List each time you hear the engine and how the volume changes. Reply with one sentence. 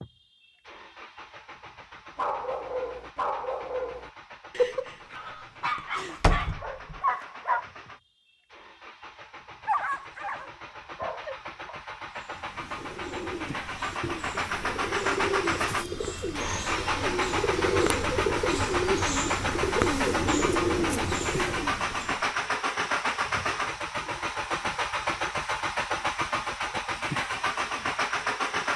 You can hear the engine from 0.0 to 28.7 s, getting louder.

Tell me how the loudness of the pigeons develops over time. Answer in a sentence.
The loudness of the pigeons goes up.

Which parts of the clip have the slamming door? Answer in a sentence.
The slamming door can be heard from 6.0 to 7.0 s.